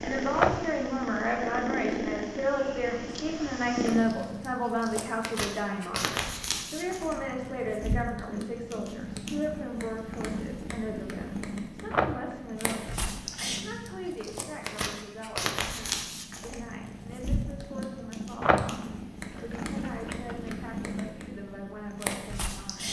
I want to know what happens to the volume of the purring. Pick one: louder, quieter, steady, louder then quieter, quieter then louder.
steady.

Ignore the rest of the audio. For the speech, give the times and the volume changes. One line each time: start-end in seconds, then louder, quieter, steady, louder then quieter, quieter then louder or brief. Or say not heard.
0.0-22.8 quieter.